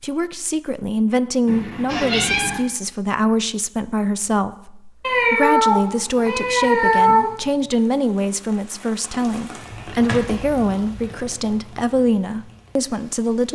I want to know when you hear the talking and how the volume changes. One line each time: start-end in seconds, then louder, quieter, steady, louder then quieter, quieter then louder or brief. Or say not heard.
0.0-13.5 steady.